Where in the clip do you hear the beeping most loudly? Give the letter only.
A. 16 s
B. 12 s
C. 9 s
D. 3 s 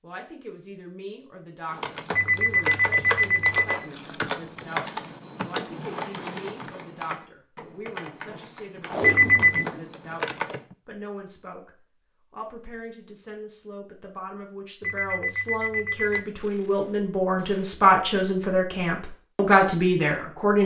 C.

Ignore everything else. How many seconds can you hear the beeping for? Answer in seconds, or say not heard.
4 s.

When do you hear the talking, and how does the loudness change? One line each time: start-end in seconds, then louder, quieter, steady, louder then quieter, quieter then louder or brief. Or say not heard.
0.0-20.6 louder.